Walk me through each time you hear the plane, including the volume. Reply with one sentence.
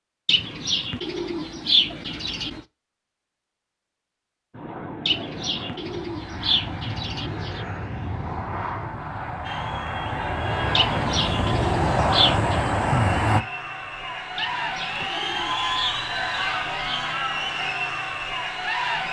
You can hear the plane from 4.5 to 13.4 s, getting louder.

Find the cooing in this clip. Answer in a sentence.
You can hear the cooing from 0.2 to 2.6 s, from 5.0 to 7.7 s, from 10.8 to 12.7 s and from 14.3 to 17.1 s.